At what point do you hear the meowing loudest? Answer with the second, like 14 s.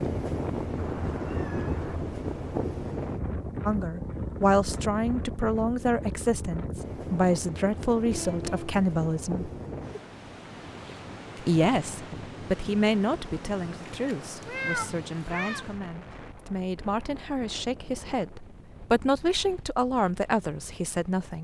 15 s.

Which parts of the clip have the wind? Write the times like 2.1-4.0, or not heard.
0.0-21.3.